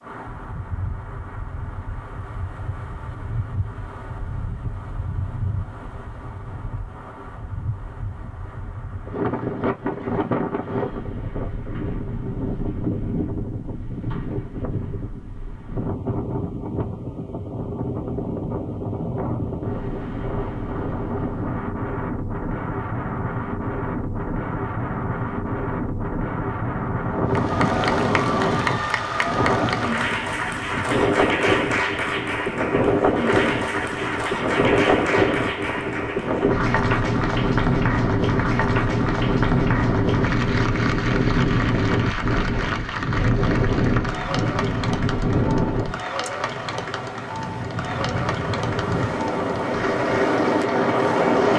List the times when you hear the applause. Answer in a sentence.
The applause can be heard from 27.3 to 51.5 s.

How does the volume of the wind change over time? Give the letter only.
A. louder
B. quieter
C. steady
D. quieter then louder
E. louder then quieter
A.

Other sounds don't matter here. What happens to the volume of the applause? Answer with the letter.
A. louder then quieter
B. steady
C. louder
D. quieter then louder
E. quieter
E.